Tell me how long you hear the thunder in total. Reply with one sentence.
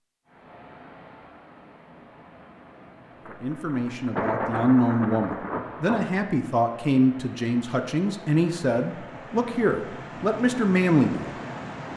You can hear the thunder for 3 seconds altogether.